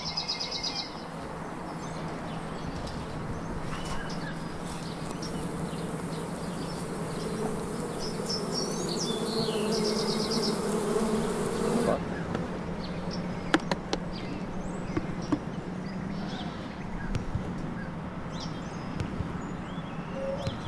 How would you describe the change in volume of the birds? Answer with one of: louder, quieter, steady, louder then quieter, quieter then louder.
steady.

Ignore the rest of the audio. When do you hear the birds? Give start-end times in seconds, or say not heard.
0.0-20.6.